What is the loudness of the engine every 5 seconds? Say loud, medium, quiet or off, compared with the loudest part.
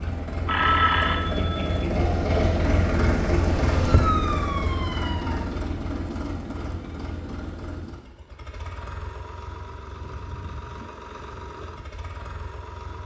loud, medium, quiet.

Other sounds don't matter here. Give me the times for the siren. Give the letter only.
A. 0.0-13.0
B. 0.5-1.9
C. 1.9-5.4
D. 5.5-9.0
C.